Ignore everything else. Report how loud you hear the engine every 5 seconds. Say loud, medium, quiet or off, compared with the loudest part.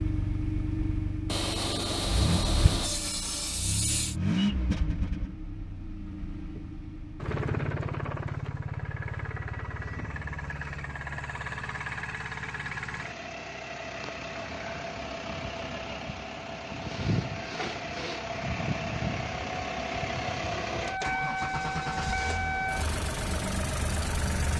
loud, medium, medium, loud, loud.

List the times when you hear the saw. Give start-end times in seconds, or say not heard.
1.2-4.2, 16.7-18.2.